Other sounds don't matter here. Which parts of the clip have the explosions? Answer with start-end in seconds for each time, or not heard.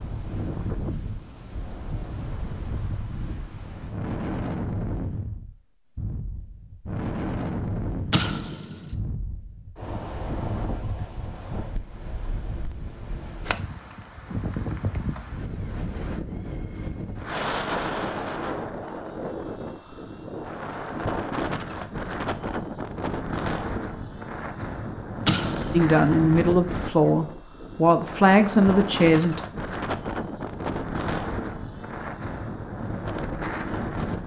8.1-8.9, 25.2-26.1.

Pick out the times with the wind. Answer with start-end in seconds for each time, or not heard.
0.0-34.2.